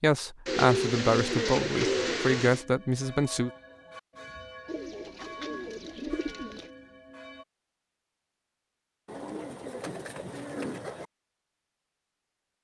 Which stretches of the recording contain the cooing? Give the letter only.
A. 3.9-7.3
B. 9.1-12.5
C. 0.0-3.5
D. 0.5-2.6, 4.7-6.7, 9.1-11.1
D.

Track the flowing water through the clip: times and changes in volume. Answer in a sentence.
You can't hear the flowing water here.